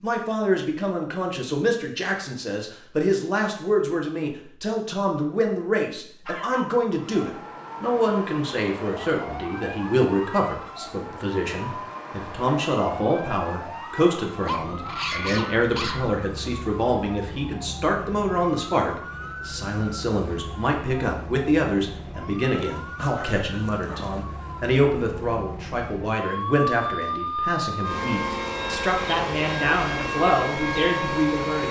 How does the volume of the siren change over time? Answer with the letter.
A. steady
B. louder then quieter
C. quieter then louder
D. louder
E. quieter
D.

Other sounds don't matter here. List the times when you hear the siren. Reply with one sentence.
You can hear the siren from 6.9 to 31.6 s.